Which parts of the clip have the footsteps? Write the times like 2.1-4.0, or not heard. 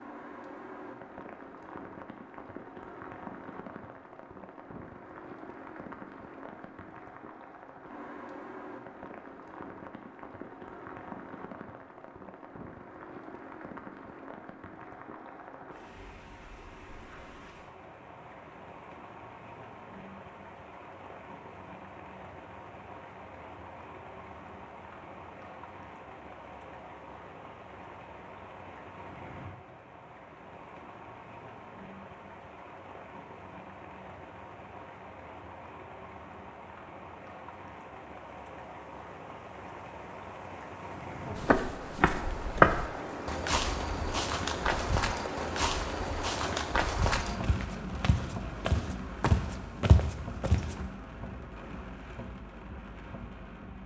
41.4-50.8.